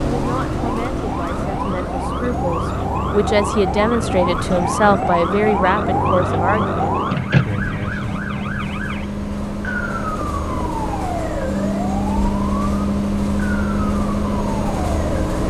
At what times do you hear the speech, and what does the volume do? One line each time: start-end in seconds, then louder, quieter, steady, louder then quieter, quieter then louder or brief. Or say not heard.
0.0-6.8 louder.